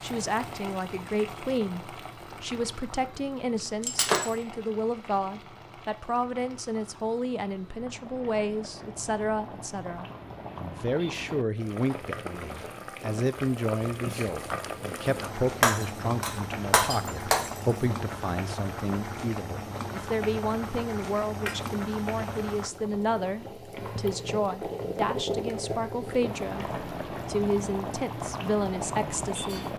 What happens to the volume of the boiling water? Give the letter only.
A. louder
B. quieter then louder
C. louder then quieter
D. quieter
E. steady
A.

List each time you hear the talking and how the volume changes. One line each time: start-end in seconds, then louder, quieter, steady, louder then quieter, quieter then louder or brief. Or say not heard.
0.0-29.7 steady.